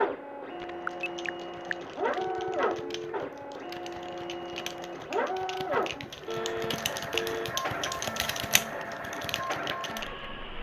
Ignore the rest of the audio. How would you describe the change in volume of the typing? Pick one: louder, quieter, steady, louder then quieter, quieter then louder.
louder.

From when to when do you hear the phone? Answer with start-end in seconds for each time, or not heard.
0.6-3.2, 6.2-7.5.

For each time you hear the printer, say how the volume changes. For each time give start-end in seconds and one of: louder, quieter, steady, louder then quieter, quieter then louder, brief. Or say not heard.
0.0-10.5 steady.